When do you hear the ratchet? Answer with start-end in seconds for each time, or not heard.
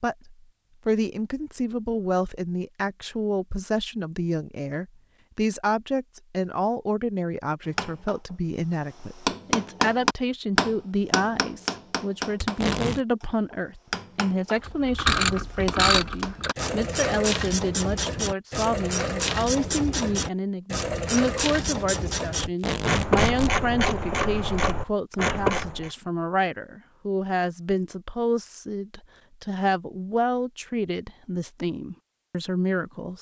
14.6-25.9.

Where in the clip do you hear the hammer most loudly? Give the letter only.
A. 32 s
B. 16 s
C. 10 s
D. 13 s
C.